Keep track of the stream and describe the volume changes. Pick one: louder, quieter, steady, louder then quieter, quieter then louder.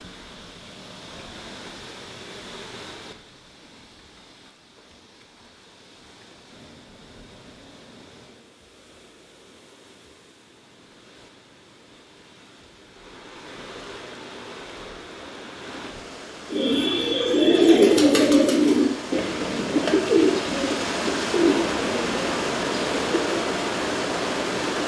quieter then louder.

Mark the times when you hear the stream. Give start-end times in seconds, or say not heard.
0.0-24.8.